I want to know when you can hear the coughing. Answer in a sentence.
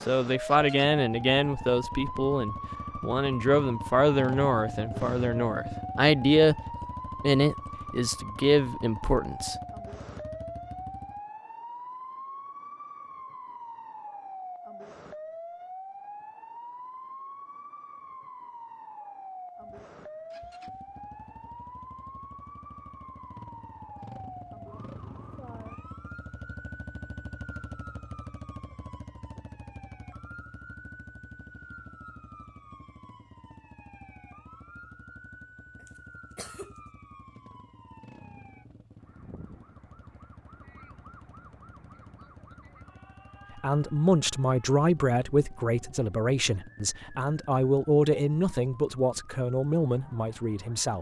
You can hear the coughing from 35.8 to 36.8 s.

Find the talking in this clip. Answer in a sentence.
You can hear the talking from 0.1 to 9.6 s and from 43.5 to 50.9 s.